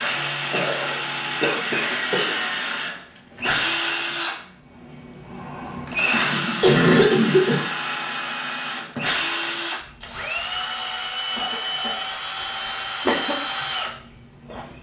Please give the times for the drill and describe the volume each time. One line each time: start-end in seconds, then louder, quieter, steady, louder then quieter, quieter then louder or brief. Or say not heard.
0.0-14.7 steady.